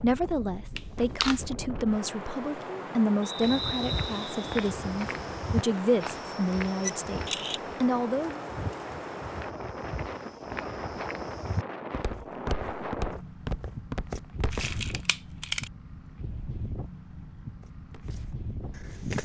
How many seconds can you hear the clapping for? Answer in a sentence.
The clapping can't be heard in this clip.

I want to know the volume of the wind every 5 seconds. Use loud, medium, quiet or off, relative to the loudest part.
loud, loud, loud, medium.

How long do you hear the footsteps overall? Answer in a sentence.
The footsteps can be heard for 13 seconds in total.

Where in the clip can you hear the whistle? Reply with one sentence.
You can hear the whistle from 3.2 to 4.5 s.